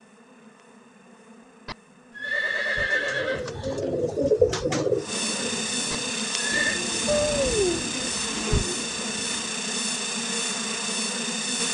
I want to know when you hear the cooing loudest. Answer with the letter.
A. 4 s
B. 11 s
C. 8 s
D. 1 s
A.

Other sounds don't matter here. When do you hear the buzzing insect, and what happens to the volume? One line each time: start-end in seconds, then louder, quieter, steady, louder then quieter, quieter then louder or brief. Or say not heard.
0.0-11.6 louder.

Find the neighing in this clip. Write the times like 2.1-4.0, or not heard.
1.6-3.5, 5.9-6.8.